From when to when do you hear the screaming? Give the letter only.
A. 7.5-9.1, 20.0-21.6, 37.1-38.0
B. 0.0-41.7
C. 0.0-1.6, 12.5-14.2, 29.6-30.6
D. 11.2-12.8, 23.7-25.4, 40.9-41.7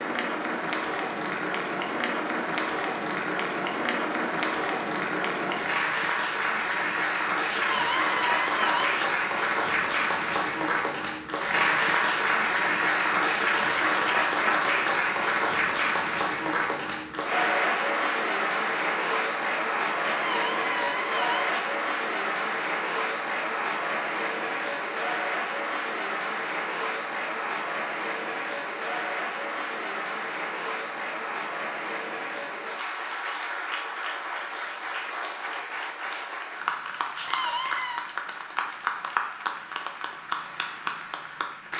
A.